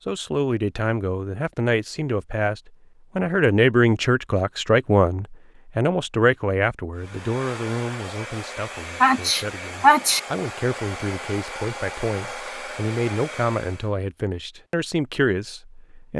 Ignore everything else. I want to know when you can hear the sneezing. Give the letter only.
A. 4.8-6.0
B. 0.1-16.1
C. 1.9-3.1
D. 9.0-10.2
D.